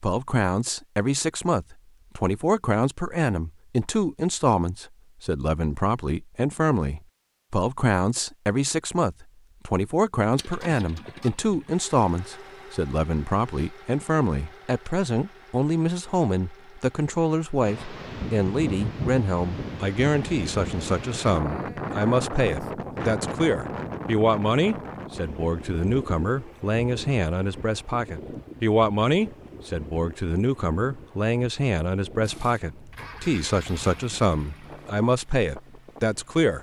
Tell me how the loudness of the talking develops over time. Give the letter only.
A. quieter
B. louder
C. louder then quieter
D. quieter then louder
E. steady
E.